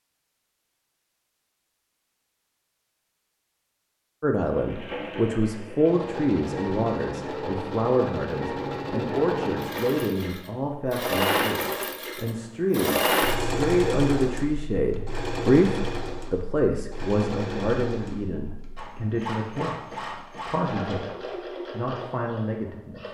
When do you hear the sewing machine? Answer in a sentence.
The sewing machine can be heard from 4.5 to 23.0 s.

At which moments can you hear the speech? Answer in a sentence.
The speech can be heard from 4.2 to 23.0 s.